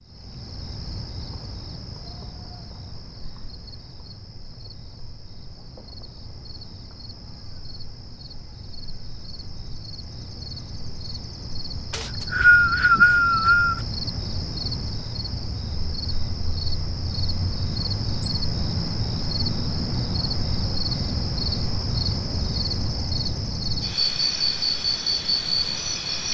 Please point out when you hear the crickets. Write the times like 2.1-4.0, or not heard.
0.0-26.2.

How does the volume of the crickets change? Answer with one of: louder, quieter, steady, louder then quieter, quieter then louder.
louder.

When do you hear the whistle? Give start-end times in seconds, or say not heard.
11.9-13.8.